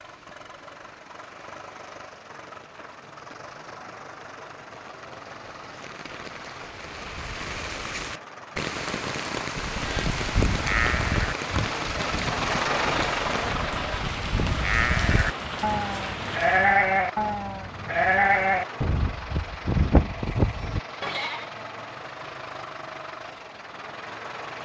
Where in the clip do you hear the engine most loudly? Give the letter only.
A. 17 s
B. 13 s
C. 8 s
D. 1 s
B.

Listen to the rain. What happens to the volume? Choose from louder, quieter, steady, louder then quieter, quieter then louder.
louder.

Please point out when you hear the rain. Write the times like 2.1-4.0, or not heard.
0.0-16.8.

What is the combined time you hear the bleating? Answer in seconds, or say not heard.
12 s.